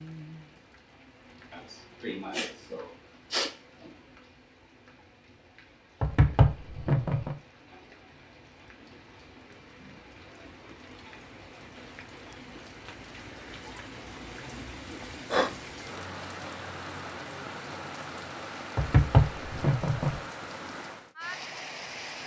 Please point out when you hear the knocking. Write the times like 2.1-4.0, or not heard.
6.0-7.3, 18.8-20.2.